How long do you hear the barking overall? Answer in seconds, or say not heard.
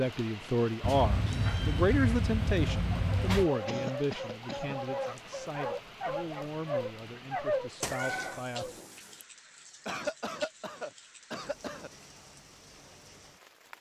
6 s.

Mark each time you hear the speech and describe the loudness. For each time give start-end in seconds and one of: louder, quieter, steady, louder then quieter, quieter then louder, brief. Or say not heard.
0.0-8.7 quieter.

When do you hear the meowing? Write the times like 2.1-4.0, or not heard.
0.8-3.5, 7.8-9.2.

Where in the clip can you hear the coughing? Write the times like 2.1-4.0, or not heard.
3.6-4.8, 9.8-11.9.